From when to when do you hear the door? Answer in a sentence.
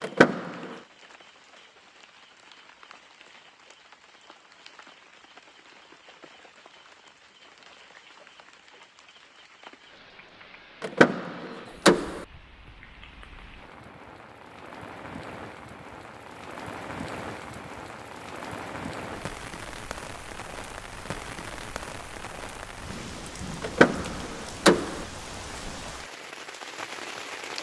You can hear the door from 0.0 to 0.8 s, from 10.8 to 12.2 s and from 23.6 to 25.1 s.